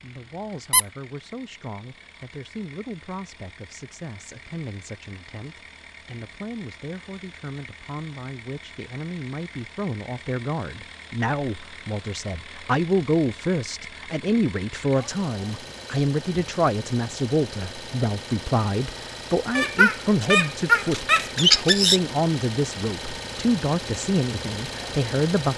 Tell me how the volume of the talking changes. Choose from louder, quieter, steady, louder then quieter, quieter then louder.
louder.